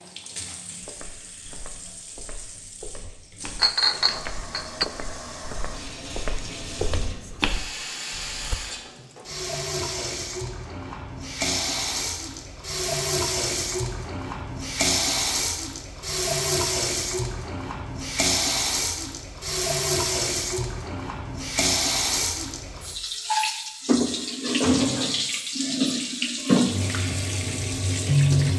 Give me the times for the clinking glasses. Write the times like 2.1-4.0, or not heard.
3.5-4.8.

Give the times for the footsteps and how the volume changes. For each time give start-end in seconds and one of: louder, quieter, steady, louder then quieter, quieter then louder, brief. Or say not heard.
0.8-8.6 louder.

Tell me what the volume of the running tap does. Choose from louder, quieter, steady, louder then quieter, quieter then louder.
louder.